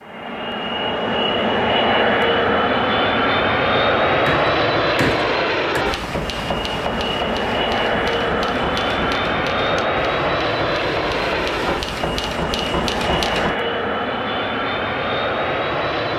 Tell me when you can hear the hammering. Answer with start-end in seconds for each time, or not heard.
4.2-13.6.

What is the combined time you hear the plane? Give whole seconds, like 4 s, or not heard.
16 s.